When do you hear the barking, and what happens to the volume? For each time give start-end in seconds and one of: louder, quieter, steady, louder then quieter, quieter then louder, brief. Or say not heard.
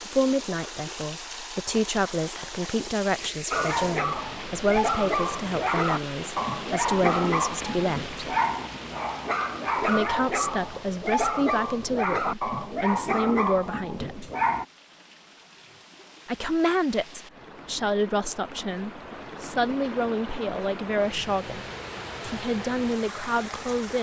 3.5-14.7 steady.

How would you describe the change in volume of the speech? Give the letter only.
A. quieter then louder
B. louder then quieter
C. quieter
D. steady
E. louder
D.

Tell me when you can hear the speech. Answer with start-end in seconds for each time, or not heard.
0.0-8.2, 9.8-14.3, 16.2-23.9.